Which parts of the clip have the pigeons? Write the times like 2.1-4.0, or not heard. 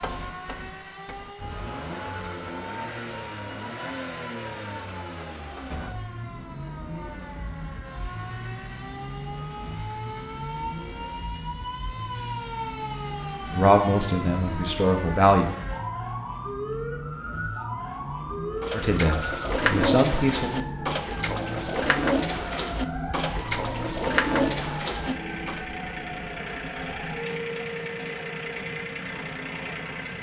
18.6-25.6.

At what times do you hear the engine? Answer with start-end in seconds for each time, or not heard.
0.0-30.1.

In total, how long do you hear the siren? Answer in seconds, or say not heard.
30 s.